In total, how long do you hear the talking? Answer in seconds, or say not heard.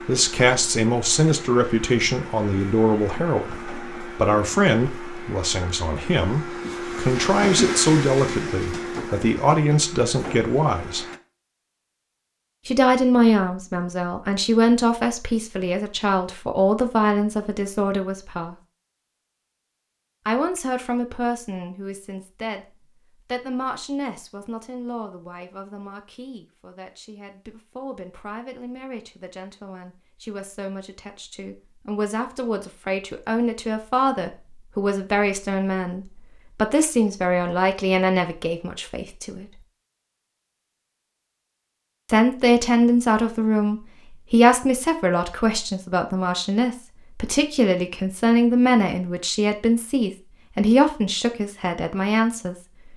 46 s.